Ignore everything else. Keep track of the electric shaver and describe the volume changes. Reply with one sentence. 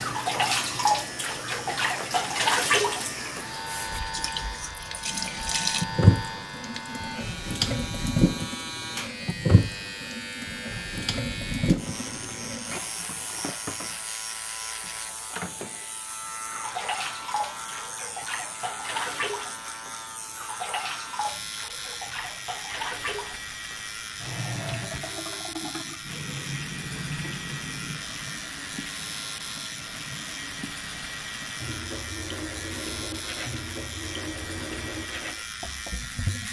The loudness of the electric shaver stays about the same.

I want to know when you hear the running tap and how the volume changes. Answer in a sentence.
The running tap can be heard from 0.0 to 36.4 s, getting quieter.